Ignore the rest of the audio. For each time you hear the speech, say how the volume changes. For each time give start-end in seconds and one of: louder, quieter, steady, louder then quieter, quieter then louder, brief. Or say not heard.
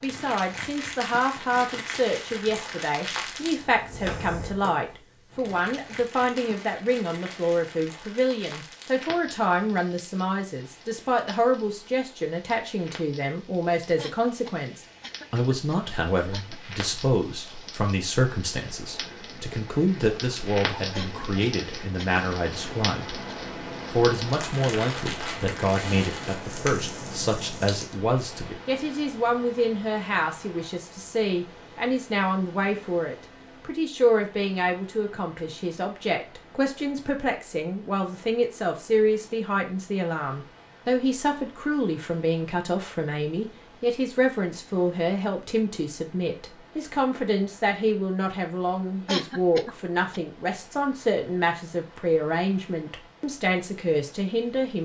0.0-23.2 steady
23.9-54.8 steady.